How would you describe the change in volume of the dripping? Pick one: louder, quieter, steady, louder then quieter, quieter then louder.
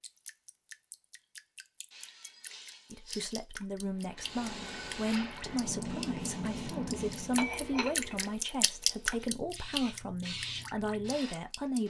louder then quieter.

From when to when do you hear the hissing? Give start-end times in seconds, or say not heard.
4.0-11.8.